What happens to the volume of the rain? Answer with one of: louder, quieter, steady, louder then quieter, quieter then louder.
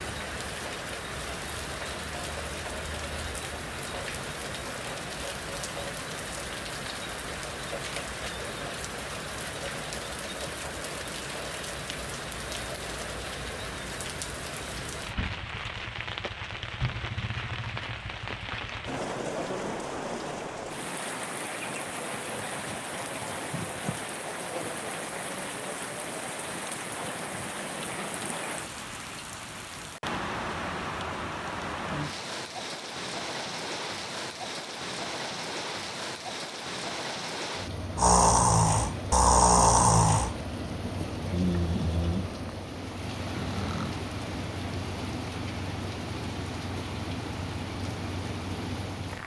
steady.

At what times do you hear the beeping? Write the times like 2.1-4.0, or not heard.
not heard.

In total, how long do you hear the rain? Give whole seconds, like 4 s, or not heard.
49 s.